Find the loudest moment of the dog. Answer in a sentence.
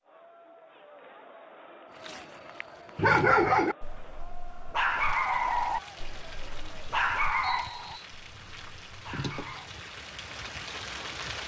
The loudest moment of the dog is at 3 seconds.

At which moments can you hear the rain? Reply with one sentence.
The rain can be heard from 4.8 to 11.4 s.